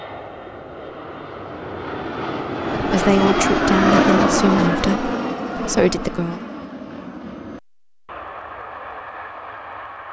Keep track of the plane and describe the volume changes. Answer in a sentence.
The loudness of the plane goes up, then down.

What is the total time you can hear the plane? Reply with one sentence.
The plane can be heard for 10 seconds in total.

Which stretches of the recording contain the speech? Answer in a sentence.
You can hear the speech from 2.9 to 6.4 s.